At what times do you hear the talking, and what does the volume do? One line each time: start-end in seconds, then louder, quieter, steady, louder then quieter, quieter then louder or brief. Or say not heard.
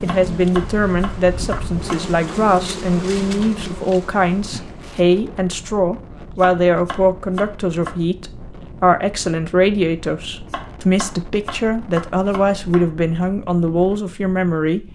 0.0-14.8 steady.